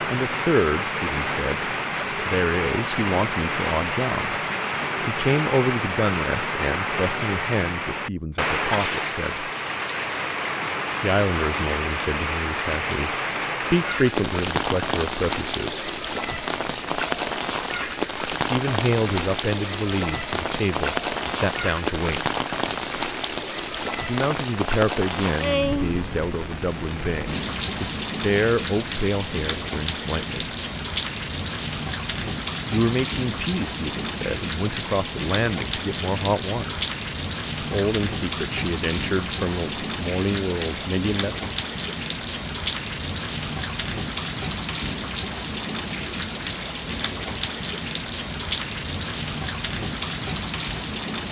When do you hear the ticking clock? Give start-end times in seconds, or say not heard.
not heard.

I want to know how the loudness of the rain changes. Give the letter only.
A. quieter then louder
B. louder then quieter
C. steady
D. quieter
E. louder
C.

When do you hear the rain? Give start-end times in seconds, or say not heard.
0.0-51.2.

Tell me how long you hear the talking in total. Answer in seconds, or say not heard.
33 s.